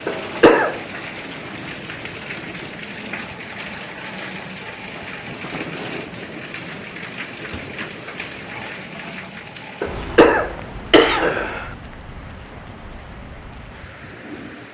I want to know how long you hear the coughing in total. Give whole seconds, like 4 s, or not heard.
3 s.